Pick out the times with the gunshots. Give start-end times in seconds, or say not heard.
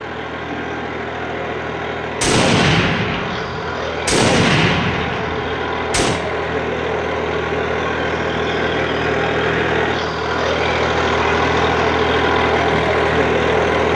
2.2-6.2.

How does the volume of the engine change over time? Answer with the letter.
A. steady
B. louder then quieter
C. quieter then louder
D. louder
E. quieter
D.